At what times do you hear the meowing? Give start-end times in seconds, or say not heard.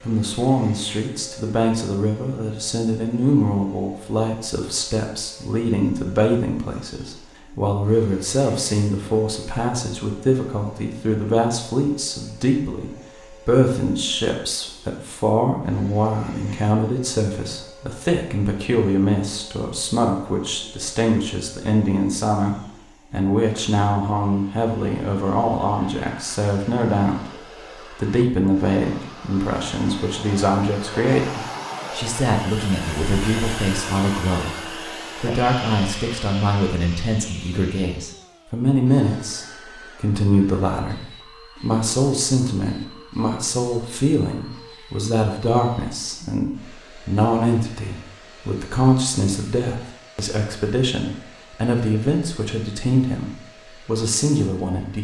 not heard.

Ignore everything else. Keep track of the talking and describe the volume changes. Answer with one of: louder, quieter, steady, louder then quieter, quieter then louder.
steady.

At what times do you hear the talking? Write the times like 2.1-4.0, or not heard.
0.0-54.9.